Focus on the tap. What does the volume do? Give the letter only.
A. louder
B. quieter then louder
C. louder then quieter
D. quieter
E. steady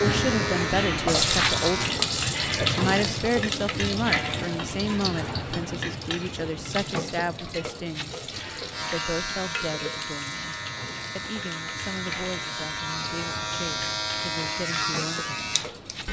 D.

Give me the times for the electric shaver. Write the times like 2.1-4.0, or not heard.
0.0-1.9, 8.7-16.0.